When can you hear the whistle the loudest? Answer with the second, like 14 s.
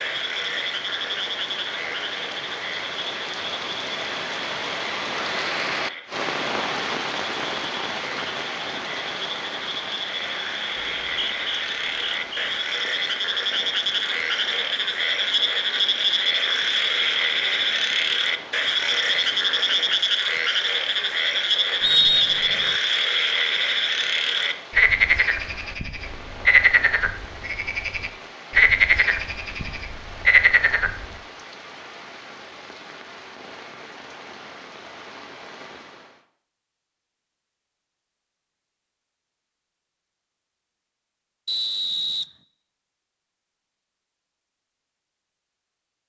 22 s.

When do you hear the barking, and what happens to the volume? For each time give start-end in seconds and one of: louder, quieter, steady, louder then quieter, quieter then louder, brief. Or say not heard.
not heard.